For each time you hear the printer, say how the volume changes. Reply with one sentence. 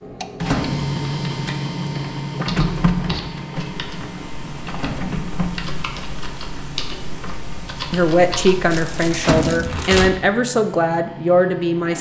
You can hear the printer from 0.0 to 11.9 s, getting quieter.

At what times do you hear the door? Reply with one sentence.
You can hear the door from 0.5 to 0.9 s, from 4.8 to 5.2 s and from 9.2 to 9.8 s.